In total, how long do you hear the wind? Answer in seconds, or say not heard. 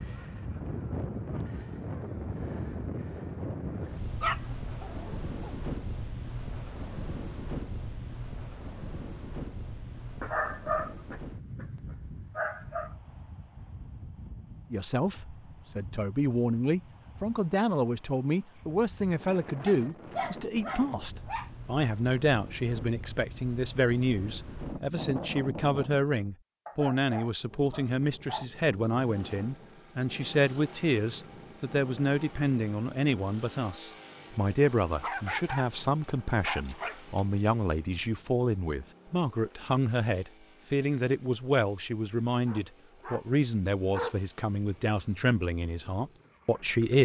26 s.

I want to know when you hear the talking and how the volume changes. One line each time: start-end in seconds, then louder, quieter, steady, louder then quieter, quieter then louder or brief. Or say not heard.
14.7-47.0 steady.